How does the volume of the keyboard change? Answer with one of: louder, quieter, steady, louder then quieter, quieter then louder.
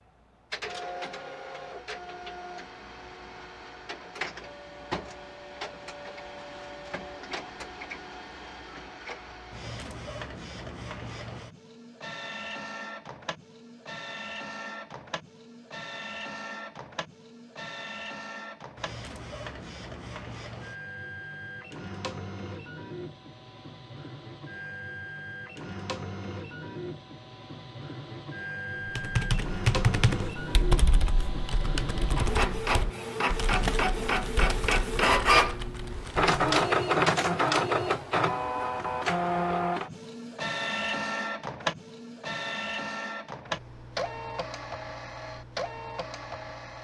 quieter.